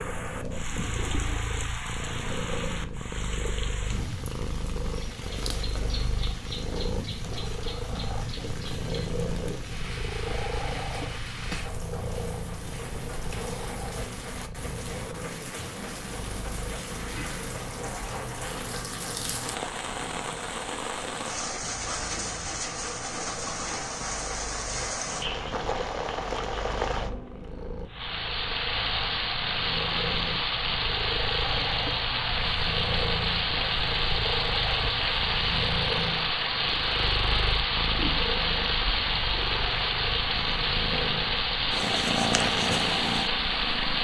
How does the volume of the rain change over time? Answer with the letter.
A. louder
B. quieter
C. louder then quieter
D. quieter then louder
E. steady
A.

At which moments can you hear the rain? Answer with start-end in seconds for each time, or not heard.
0.0-43.9.